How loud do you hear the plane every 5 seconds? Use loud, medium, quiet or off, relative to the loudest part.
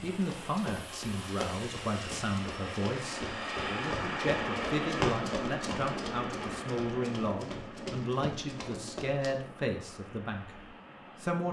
loud, loud, quiet.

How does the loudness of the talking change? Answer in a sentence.
The volume of the talking stays about the same.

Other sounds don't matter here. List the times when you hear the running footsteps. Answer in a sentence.
You can hear the running footsteps from 0.0 to 9.4 s.